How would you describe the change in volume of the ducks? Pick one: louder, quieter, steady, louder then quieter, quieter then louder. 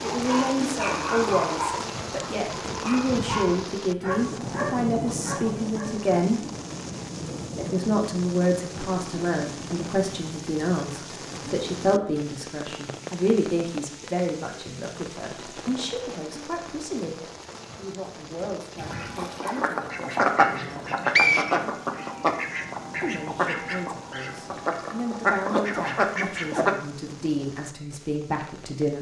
quieter then louder.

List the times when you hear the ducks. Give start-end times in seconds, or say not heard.
18.8-26.8.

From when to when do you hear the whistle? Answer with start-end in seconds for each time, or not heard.
20.6-21.6.